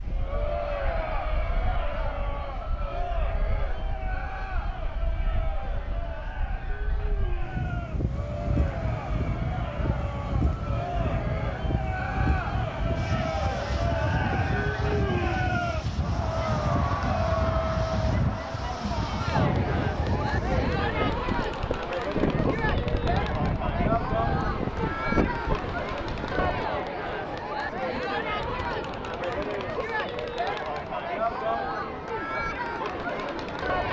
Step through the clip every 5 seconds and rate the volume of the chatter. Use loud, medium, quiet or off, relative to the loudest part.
medium, medium, loud, loud, loud, loud, loud.